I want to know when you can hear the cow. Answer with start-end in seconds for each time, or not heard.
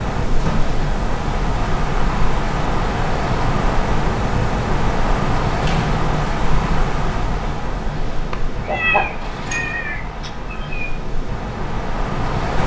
not heard.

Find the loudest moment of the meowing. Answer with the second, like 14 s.
9 s.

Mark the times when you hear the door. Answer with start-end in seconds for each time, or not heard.
0.3-0.8, 5.6-6.8, 9.2-9.8.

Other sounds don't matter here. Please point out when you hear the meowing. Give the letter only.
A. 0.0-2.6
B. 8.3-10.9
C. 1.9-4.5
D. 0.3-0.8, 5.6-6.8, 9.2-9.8
B.